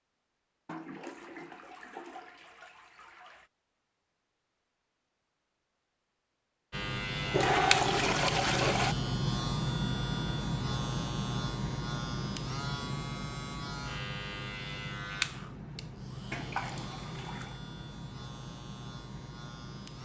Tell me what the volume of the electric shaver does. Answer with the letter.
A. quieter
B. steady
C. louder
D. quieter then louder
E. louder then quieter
A.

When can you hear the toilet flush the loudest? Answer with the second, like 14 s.
8 s.